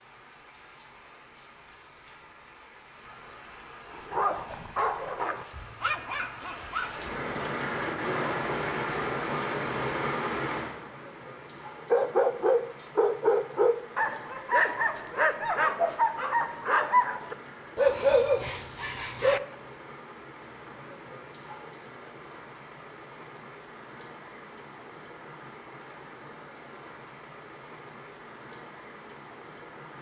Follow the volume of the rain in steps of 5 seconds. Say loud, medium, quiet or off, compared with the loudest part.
quiet, loud, medium, quiet, quiet, quiet.